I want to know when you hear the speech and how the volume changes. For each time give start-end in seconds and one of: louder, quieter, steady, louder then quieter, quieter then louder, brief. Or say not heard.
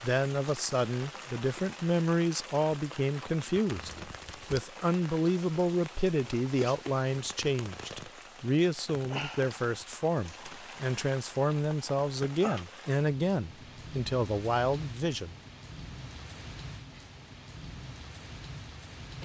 0.0-15.3 steady.